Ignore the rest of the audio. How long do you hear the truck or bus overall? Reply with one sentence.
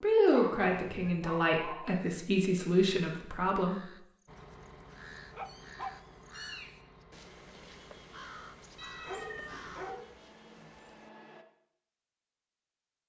You can hear the truck or bus for 7 seconds altogether.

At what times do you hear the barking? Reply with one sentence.
The barking can be heard from 0.3 to 2.0 s, from 4.3 to 6.0 s and from 9.1 to 10.8 s.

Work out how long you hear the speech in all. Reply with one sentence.
The speech can be heard for 4 seconds in total.